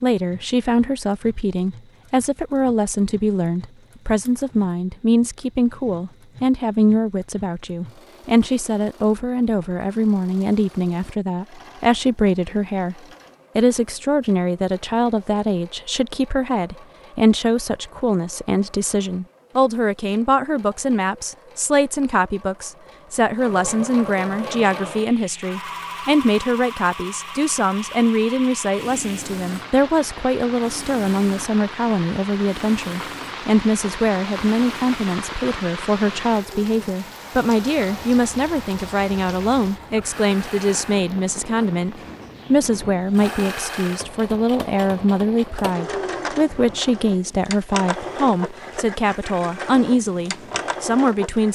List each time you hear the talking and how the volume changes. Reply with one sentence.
The talking can be heard from 0.0 to 12.9 s, at a steady volume; and from 13.6 to 51.5 s, at a steady volume.